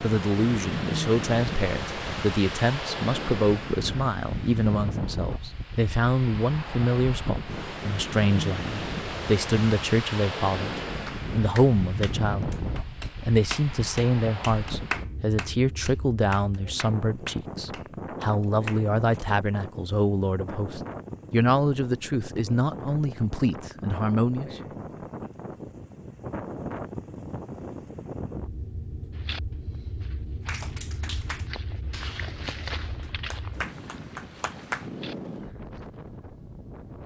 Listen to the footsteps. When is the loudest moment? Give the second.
33 s.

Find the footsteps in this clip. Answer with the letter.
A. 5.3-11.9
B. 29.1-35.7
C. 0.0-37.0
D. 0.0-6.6
B.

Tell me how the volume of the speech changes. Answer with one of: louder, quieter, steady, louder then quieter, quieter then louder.
steady.